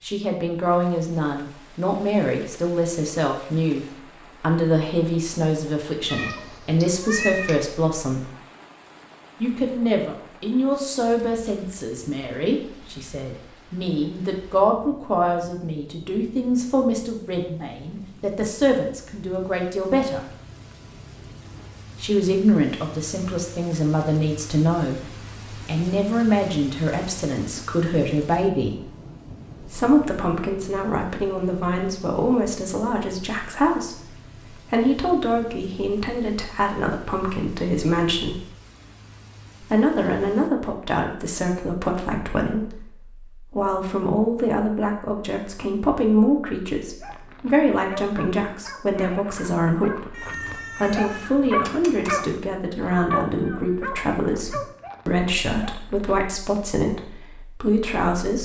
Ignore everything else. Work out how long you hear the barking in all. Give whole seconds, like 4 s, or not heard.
9 s.